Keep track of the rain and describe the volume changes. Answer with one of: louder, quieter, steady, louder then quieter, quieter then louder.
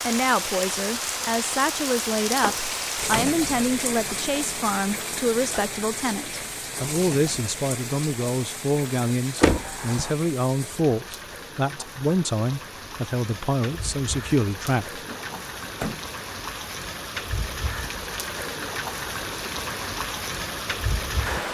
quieter then louder.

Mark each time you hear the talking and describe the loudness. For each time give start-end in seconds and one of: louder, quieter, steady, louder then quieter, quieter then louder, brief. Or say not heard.
0.0-15.1 steady.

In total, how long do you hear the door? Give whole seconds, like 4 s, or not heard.
3 s.